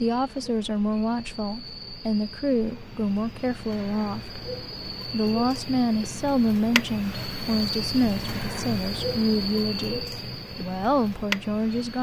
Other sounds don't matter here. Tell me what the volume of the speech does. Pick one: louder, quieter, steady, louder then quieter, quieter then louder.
steady.